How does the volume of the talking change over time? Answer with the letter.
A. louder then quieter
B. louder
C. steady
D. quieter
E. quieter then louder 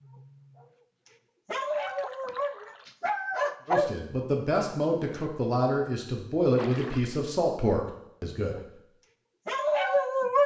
C.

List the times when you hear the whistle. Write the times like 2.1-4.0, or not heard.
not heard.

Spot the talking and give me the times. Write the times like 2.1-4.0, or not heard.
3.6-8.6.